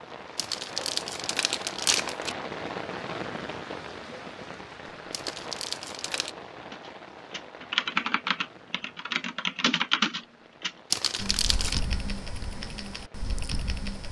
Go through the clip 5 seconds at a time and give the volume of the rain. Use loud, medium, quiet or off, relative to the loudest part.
loud, medium, quiet.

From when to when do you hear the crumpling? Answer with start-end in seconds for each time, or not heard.
0.3-2.4, 5.1-6.3, 10.9-11.8.